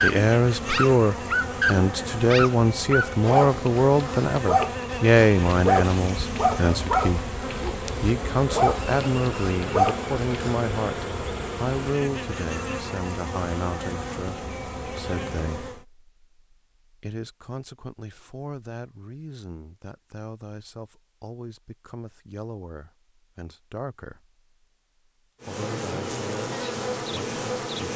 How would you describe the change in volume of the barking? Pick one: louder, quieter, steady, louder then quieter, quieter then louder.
steady.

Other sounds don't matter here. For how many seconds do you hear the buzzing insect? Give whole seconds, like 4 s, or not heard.
18 s.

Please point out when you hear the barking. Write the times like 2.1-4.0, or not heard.
0.0-10.6.